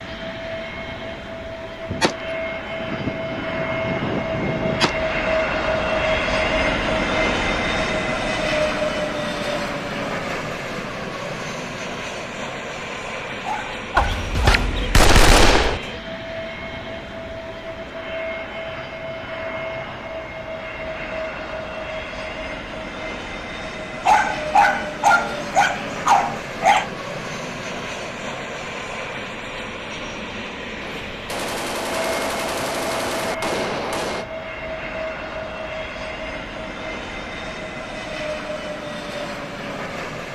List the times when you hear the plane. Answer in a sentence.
The plane can be heard from 0.0 to 40.3 s.